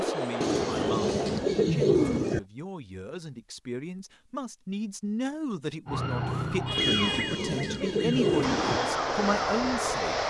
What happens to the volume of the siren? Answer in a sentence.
The volume of the siren goes down.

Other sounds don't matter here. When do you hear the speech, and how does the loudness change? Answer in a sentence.
You can hear the speech from 0.0 to 10.2 s, getting louder.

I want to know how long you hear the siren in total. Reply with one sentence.
You can hear the siren for 4 seconds altogether.